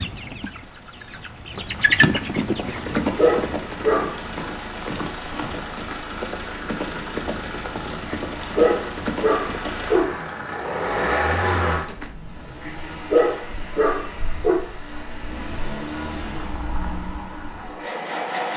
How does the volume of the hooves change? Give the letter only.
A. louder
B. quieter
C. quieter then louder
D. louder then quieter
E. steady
B.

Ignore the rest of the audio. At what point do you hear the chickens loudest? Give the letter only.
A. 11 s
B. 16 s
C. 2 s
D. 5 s
C.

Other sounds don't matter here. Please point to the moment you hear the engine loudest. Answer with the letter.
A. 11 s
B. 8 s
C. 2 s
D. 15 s
A.